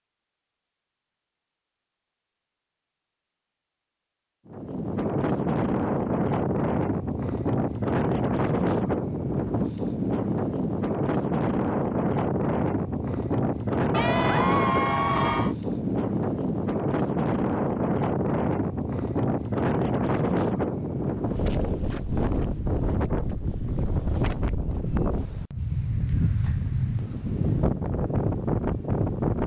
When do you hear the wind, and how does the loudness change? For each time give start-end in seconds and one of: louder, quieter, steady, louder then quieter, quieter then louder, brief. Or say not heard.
4.5-29.4 steady.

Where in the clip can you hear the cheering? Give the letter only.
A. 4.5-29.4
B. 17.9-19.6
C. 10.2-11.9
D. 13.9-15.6
D.